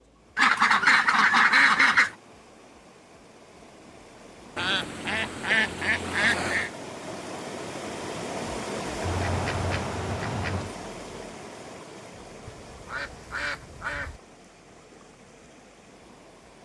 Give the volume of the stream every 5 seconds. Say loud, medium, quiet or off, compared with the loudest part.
quiet, loud, medium, quiet.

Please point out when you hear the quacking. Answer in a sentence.
You can hear the quacking from 0.3 to 2.1 s, from 4.5 to 6.7 s, from 9.0 to 10.8 s and from 12.4 to 14.2 s.